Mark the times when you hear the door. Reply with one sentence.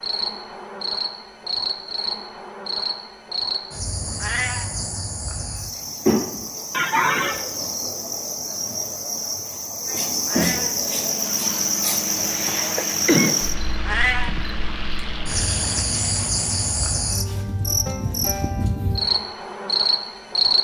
The door can't be heard in this clip.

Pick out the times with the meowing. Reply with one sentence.
The meowing can be heard from 4.2 to 4.7 s, from 10.2 to 10.8 s and from 13.8 to 14.3 s.